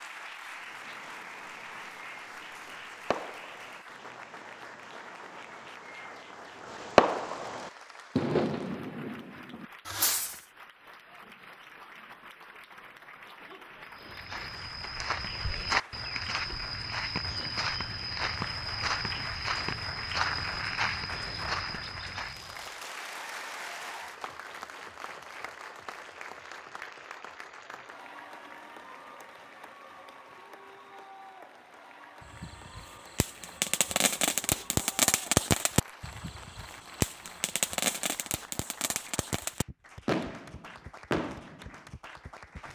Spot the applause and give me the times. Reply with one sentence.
The applause can be heard from 0.0 to 42.7 s.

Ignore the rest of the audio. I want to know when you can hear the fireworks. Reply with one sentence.
The fireworks can be heard from 0.6 to 10.4 s and from 32.2 to 41.8 s.